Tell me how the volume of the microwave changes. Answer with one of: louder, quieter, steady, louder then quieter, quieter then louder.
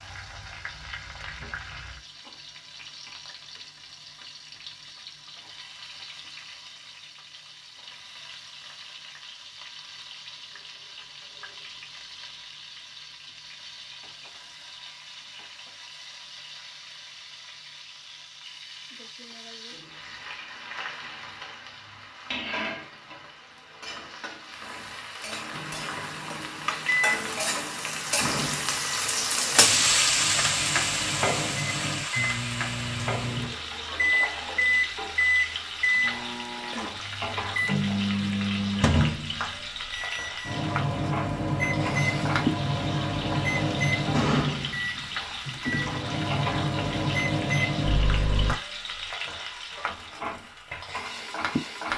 louder.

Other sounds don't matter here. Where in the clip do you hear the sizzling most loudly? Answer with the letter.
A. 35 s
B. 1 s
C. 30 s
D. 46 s
C.